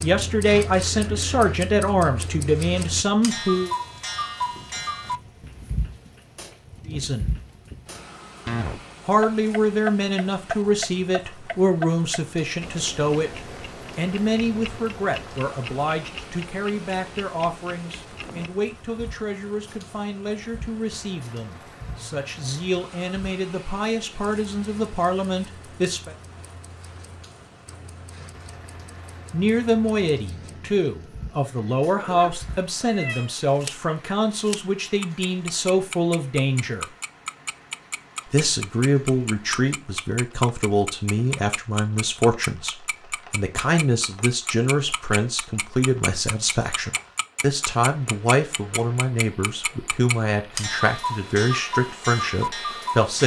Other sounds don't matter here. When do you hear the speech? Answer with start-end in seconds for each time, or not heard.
0.0-3.8, 6.8-7.3, 9.1-26.1, 29.3-36.9, 38.2-53.2.